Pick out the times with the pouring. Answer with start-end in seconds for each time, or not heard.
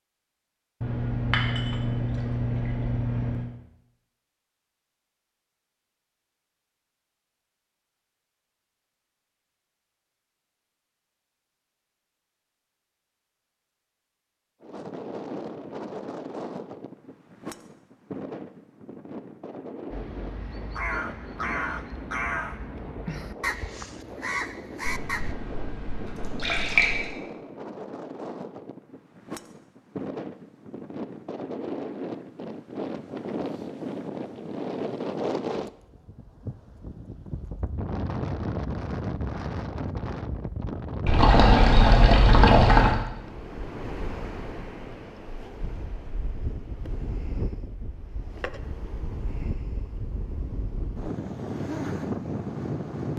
0.8-3.5, 24.9-27.1, 41.0-43.0.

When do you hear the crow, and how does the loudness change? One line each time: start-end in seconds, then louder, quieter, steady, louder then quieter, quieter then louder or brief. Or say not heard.
19.9-25.4 steady.